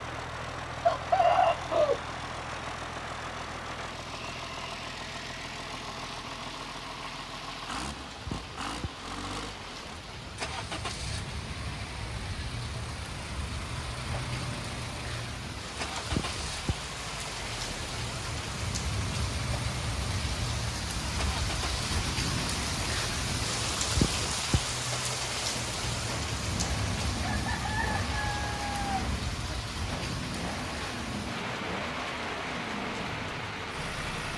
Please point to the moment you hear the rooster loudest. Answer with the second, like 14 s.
1 s.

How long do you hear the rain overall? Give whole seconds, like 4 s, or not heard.
34 s.